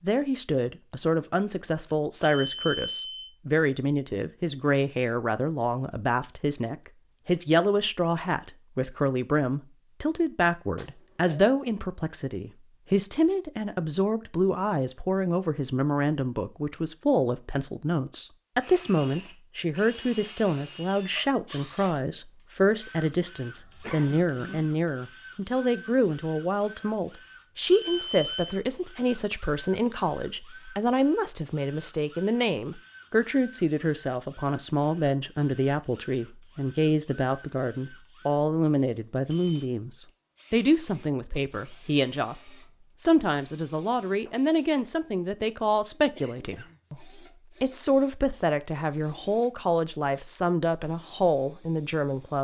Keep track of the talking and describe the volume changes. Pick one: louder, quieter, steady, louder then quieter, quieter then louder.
steady.